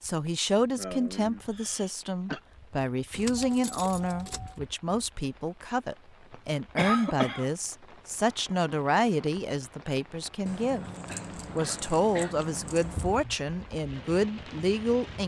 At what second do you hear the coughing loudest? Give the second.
7 s.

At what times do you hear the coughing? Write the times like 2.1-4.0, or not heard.
0.8-2.4, 6.8-7.5, 11.1-12.3.